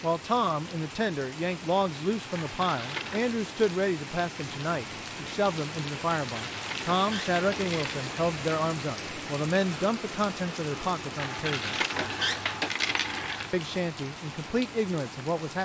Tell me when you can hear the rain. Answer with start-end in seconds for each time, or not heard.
0.0-15.6.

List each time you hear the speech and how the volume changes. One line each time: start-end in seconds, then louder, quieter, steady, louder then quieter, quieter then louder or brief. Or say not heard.
0.0-11.8 steady
13.5-15.6 brief.